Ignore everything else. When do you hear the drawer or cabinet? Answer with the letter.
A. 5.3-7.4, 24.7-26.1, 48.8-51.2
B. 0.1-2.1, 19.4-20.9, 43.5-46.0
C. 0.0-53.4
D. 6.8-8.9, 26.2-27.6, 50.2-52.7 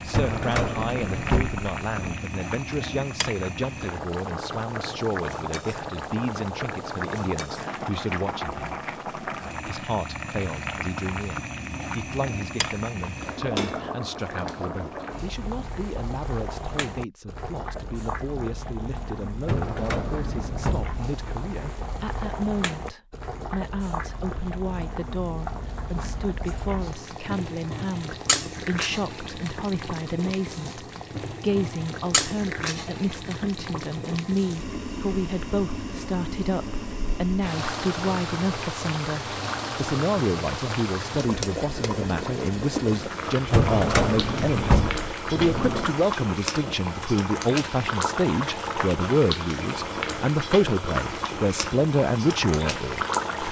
B.